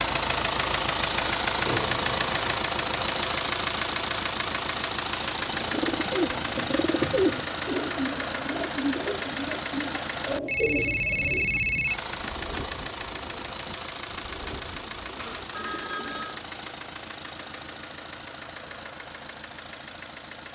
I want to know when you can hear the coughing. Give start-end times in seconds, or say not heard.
not heard.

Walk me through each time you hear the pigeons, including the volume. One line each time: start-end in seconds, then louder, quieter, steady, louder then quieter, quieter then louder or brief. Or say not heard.
5.5-16.3 quieter.